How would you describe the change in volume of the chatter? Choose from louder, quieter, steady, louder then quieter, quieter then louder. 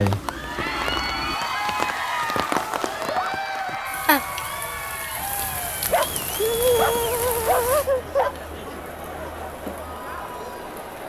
quieter.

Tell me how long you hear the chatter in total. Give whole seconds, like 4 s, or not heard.
11 s.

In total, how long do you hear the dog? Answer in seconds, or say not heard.
4 s.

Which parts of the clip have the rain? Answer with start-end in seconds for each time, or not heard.
0.0-11.0.